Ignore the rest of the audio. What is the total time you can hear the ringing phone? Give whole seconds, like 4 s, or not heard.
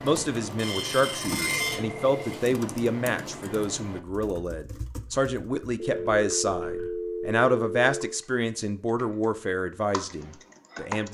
3 s.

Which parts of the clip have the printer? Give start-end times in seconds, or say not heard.
0.1-1.9.